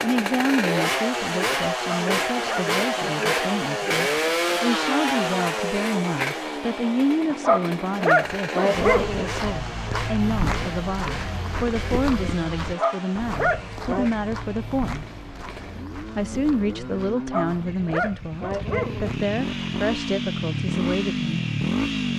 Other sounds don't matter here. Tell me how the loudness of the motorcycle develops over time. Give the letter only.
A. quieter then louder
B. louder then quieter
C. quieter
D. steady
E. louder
A.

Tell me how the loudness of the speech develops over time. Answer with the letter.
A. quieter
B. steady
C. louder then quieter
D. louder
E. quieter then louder
B.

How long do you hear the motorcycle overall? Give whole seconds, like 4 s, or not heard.
22 s.